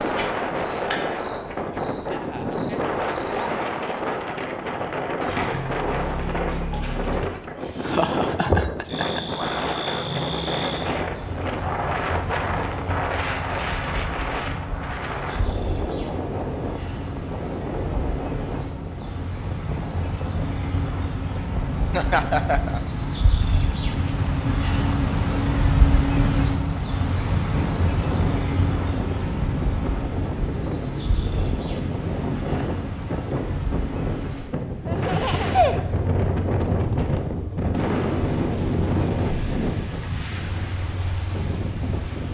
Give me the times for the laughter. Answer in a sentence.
The laughter can be heard from 7.8 to 9.2 s, from 21.9 to 22.8 s and from 34.9 to 36.0 s.